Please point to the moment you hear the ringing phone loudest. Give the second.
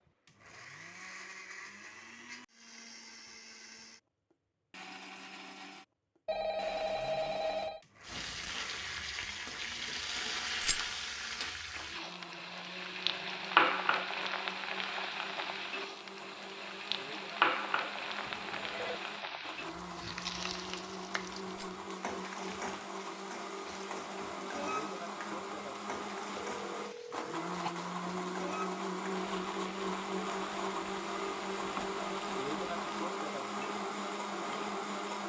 7 s.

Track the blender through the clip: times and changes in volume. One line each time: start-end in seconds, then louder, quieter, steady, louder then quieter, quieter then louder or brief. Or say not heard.
0.0-35.2 louder.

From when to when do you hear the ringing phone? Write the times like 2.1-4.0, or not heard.
6.2-7.8, 18.2-19.0, 26.4-27.7.